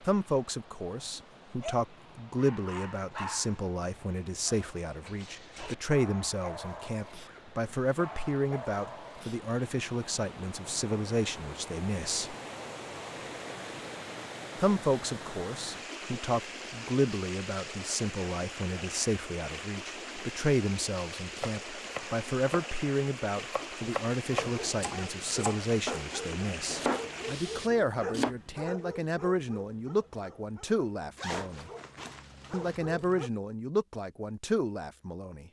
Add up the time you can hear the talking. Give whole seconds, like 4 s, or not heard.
32 s.